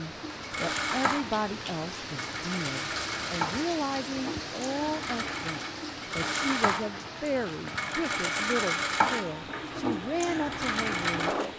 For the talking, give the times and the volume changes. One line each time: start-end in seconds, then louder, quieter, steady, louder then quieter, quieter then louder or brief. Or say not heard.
0.0-11.3 steady.